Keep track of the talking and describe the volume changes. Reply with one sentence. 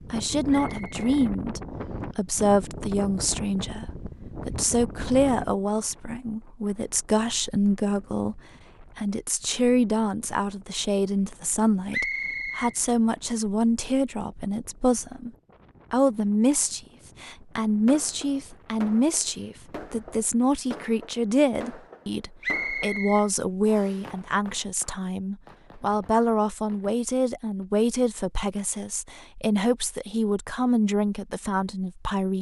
The loudness of the talking stays about the same.